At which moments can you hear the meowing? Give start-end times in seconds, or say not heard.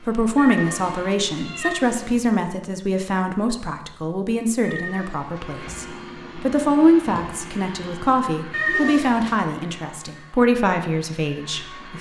0.3-2.3, 4.6-5.6, 8.5-9.4.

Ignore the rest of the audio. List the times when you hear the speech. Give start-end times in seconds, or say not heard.
0.0-11.9.